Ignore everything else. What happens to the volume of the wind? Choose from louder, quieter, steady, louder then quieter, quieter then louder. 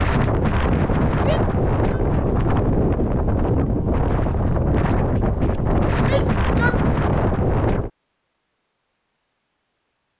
steady.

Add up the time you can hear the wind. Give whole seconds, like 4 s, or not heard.
8 s.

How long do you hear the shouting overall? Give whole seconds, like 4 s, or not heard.
2 s.